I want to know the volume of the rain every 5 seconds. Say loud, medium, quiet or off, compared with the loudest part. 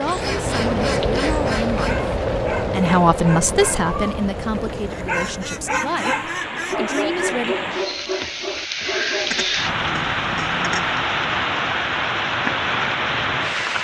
loud, medium, loud.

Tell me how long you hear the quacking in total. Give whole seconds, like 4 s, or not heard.
6 s.